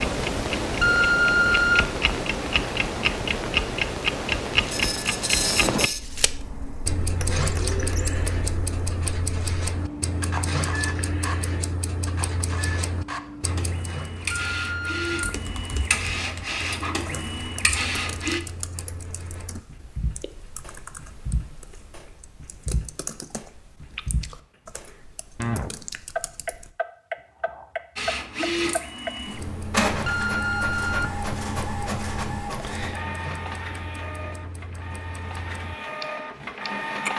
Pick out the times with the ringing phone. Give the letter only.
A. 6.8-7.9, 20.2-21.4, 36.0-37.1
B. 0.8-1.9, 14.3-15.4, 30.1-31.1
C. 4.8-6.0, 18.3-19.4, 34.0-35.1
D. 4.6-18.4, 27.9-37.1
B.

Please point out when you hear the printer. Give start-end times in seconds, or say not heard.
4.6-18.4, 27.9-37.1.